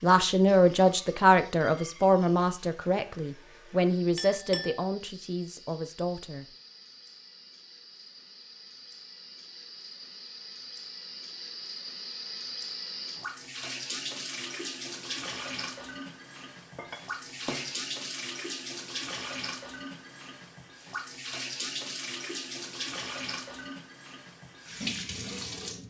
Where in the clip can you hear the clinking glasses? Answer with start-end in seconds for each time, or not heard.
4.2-4.8, 16.8-17.8.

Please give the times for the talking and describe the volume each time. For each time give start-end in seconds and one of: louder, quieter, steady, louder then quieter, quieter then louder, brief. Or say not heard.
0.0-6.5 quieter.